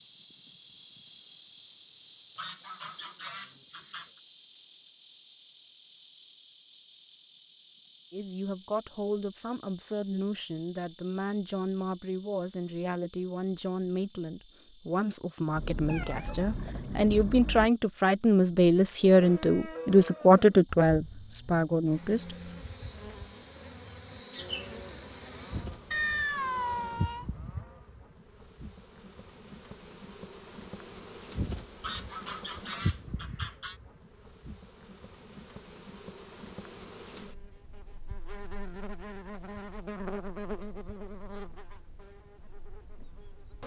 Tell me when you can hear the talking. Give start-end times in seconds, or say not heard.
8.1-22.4.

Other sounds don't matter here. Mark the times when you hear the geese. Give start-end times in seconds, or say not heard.
2.4-4.2, 31.8-33.8.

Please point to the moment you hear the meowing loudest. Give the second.
26 s.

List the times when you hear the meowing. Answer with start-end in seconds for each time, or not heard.
15.6-17.7, 25.9-27.2.